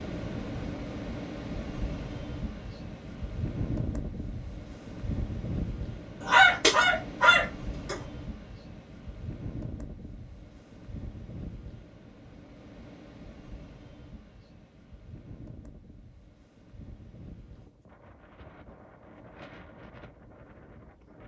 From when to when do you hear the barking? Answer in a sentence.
You can hear the barking from 6.2 to 8.0 s.